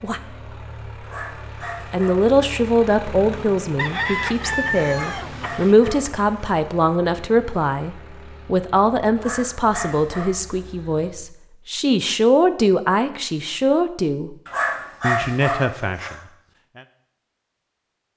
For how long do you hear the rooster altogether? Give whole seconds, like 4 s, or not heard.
2 s.